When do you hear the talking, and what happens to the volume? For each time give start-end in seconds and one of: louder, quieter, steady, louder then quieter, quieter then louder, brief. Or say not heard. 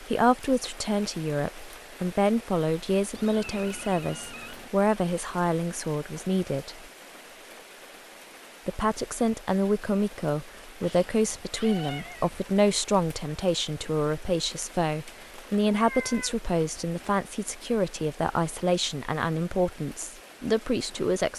0.0-6.8 steady
8.7-21.3 steady.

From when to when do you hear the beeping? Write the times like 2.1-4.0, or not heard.
not heard.